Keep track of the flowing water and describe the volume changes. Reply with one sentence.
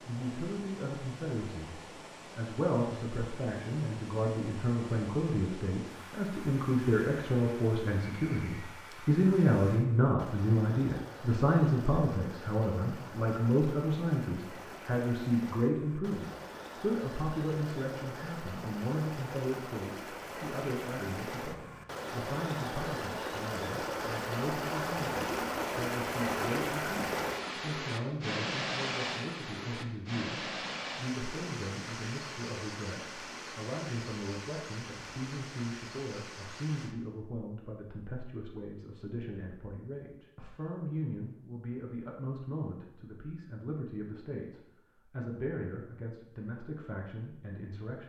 The volume of the flowing water goes up, then down.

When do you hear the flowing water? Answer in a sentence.
You can hear the flowing water from 0.0 to 37.0 s.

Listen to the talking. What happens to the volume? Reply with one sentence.
The volume of the talking goes down.